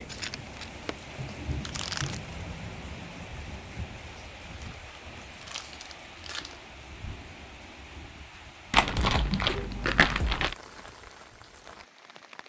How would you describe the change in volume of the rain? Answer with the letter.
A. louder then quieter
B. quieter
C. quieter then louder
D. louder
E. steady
B.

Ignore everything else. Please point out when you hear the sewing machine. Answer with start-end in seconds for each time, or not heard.
not heard.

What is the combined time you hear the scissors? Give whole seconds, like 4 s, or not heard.
2 s.